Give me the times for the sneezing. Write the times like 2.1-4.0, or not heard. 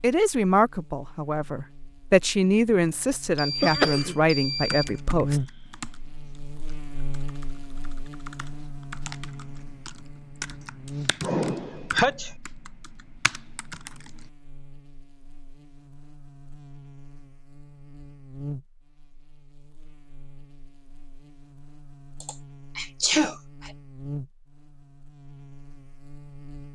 3.6-4.2, 11.2-12.3, 22.2-23.7.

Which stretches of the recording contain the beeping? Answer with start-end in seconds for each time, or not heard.
3.4-5.0.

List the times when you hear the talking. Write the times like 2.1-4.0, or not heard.
0.0-5.4.